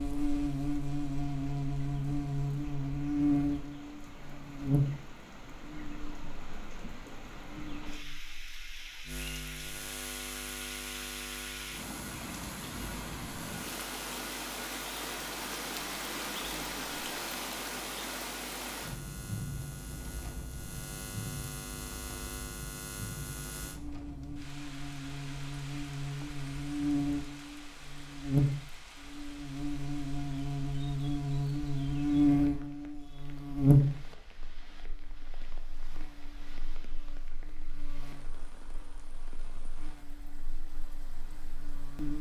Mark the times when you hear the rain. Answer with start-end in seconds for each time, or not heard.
0.0-42.1.